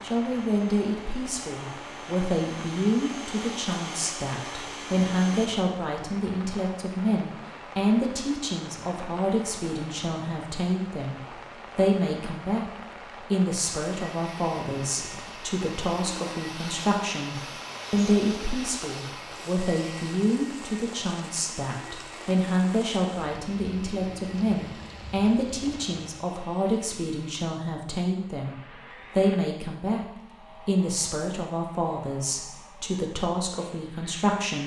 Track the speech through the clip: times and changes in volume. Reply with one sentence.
You can hear the speech from 0.0 to 34.6 s, at a steady volume.